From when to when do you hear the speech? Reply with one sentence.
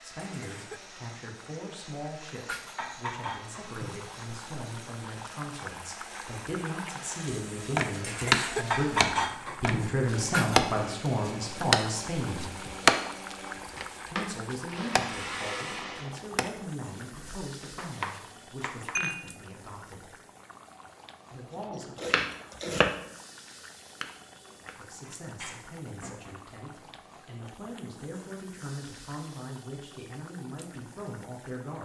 The speech can be heard from 0.0 to 12.5 s, from 14.1 to 20.1 s, from 21.3 to 22.1 s and from 24.6 to 31.8 s.